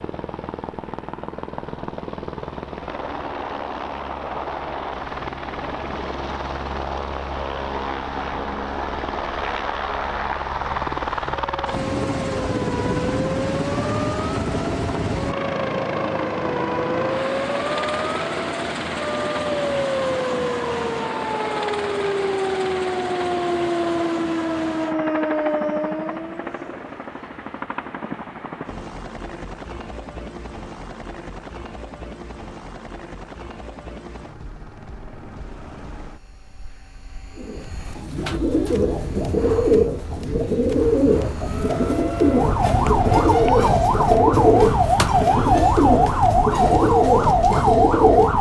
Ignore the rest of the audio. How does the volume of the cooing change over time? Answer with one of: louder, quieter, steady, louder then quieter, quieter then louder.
steady.